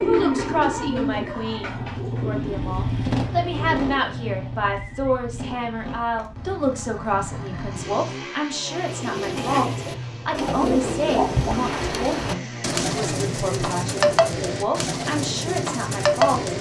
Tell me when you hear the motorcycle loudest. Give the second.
3 s.